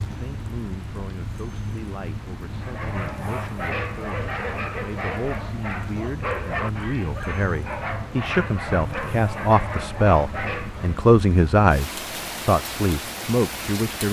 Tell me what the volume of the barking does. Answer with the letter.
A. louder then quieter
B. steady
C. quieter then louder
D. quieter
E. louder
B.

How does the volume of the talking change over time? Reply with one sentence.
The loudness of the talking goes up.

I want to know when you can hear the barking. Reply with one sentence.
You can hear the barking from 2.5 to 11.0 s.